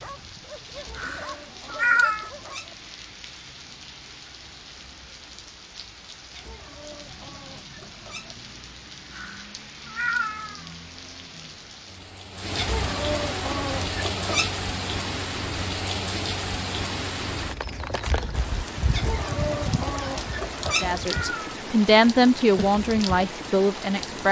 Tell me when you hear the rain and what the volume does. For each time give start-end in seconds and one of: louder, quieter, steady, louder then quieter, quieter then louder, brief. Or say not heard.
0.0-24.2 louder.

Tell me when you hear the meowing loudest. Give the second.
2 s.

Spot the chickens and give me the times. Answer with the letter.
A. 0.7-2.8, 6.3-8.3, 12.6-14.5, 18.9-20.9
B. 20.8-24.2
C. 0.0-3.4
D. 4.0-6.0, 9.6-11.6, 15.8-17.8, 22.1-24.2
A.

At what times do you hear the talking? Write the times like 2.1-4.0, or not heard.
20.8-24.2.